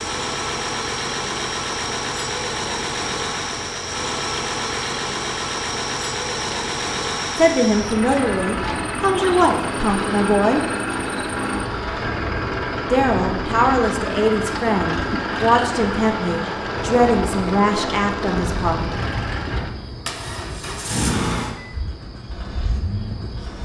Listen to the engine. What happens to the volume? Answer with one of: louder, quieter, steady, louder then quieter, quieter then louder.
steady.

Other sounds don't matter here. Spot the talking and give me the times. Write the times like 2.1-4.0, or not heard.
7.3-10.7, 12.9-18.8.